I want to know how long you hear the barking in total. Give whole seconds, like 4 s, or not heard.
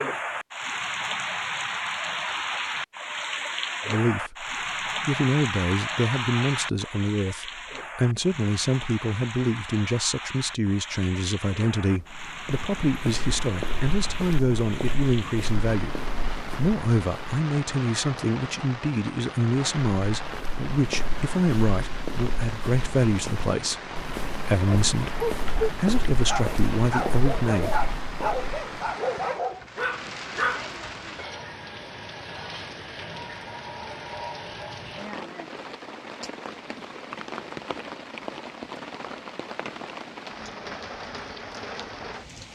6 s.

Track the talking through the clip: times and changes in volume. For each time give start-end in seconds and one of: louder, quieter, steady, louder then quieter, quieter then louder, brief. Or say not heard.
3.9-4.5 brief
5.0-15.9 steady
16.5-27.8 steady.